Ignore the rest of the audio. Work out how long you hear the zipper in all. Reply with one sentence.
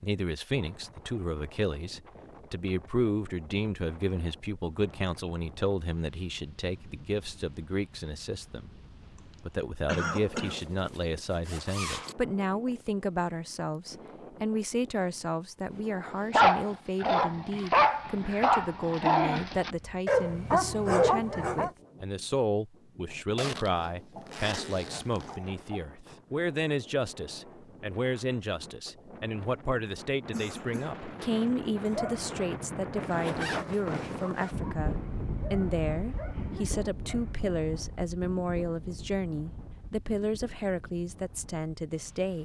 You can hear the zipper for 5 seconds altogether.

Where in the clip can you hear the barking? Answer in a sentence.
The barking can be heard from 16.1 to 21.7 s and from 31.8 to 37.4 s.